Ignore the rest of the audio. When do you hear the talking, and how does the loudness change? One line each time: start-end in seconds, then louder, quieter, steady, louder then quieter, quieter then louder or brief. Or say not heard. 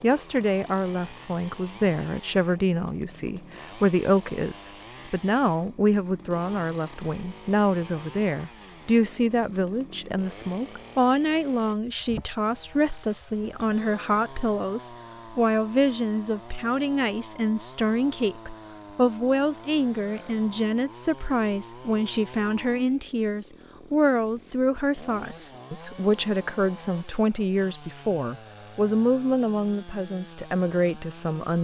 0.0-31.5 steady.